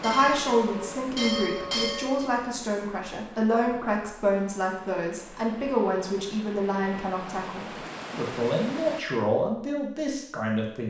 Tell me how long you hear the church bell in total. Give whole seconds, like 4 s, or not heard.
2 s.